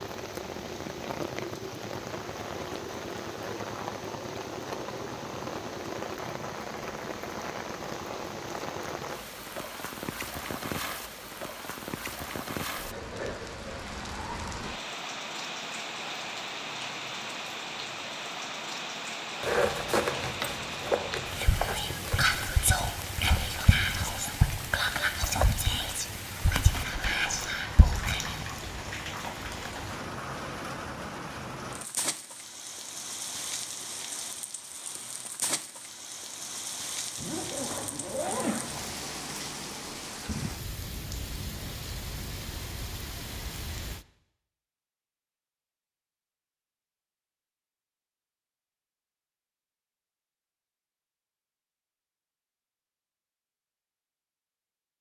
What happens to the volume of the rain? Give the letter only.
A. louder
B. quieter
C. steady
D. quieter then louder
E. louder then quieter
C.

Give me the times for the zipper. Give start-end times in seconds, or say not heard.
19.4-22.2, 37.1-38.9.